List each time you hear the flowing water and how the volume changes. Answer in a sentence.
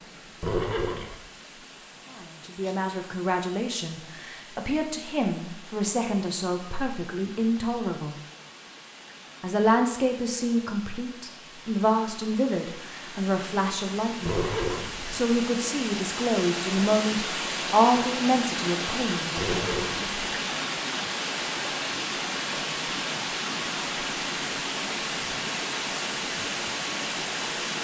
You can hear the flowing water from 0.0 to 27.7 s, getting louder.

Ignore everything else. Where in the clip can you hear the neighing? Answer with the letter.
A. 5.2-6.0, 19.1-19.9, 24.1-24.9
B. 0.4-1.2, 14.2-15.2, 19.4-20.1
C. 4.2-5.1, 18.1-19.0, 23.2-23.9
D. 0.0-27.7
B.